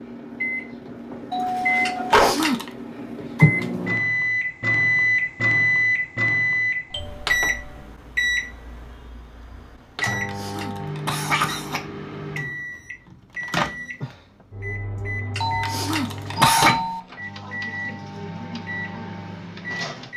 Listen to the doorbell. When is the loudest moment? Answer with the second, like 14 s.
2 s.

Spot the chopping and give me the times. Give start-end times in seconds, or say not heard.
not heard.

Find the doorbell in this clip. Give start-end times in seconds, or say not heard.
1.3-2.4, 6.9-7.8, 15.4-17.0.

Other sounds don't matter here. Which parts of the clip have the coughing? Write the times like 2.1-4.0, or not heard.
1.9-2.7, 10.0-11.8, 15.3-16.8.